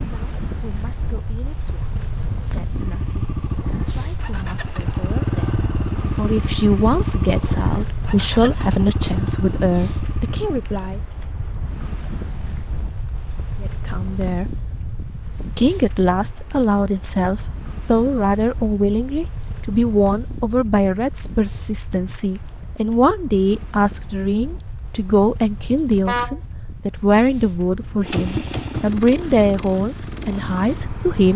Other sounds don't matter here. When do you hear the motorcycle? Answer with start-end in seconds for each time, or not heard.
2.7-10.7, 28.0-31.3.